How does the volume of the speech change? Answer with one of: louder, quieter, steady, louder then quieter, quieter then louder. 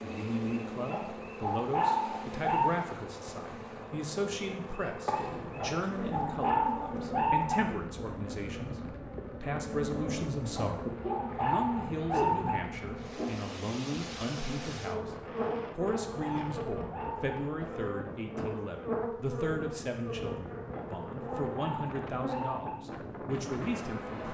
steady.